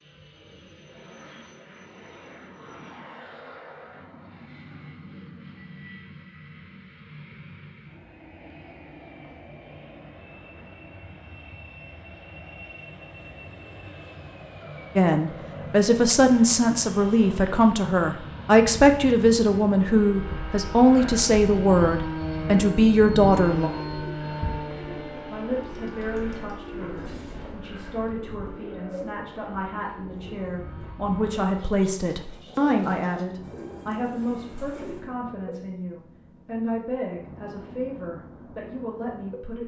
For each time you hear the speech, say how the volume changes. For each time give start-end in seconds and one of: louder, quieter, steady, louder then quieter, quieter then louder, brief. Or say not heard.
14.9-23.7 steady
25.3-39.6 louder then quieter.